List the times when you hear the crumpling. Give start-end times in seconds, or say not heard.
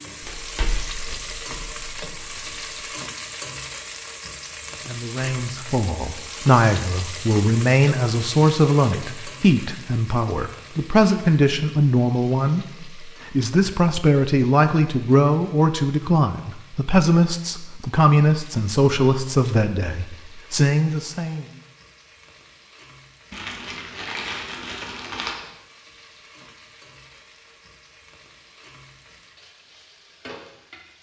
0.2-2.8, 23.3-25.4.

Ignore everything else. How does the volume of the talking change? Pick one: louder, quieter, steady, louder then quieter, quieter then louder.
steady.